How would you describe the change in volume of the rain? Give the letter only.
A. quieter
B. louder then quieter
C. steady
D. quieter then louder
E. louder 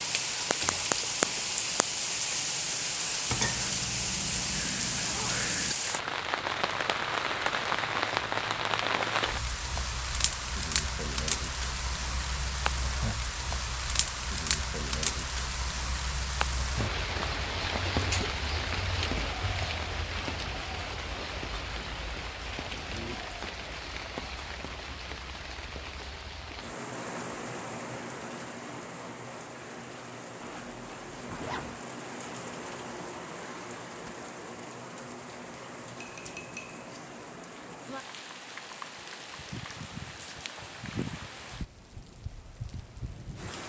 A.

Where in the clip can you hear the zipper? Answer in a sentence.
The zipper can be heard from 5.0 to 5.4 s and from 30.4 to 31.8 s.